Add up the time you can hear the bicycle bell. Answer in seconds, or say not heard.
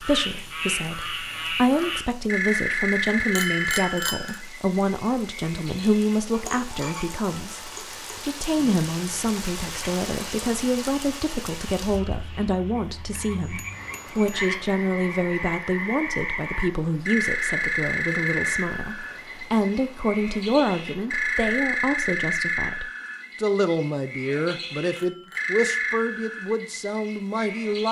3 s.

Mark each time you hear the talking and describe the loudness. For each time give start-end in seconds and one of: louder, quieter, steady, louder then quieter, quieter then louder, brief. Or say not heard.
0.0-27.8 steady.